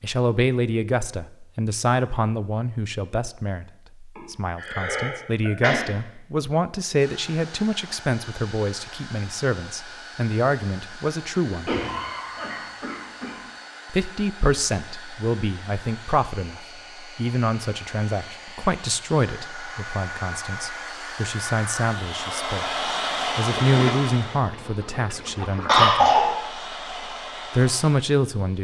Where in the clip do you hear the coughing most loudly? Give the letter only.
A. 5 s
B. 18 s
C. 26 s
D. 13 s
C.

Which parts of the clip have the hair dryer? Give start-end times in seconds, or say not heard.
7.0-28.5.